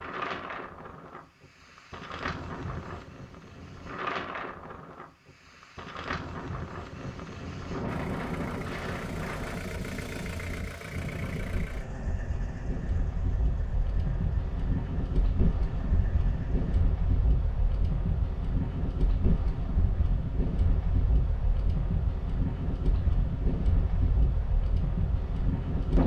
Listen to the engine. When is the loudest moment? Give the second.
10 s.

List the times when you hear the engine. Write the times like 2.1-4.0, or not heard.
7.8-16.9.